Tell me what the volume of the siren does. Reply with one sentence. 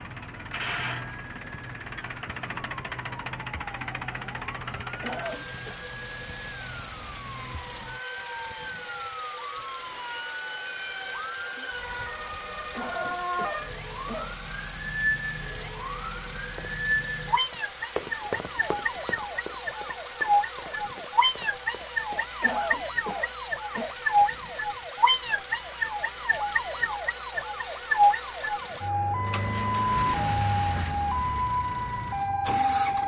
The loudness of the siren goes up.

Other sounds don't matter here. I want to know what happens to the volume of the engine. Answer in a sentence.
The volume of the engine stays about the same.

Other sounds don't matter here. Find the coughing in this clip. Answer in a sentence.
You can hear the coughing from 5.0 to 5.8 s, from 12.7 to 14.3 s and from 22.4 to 23.9 s.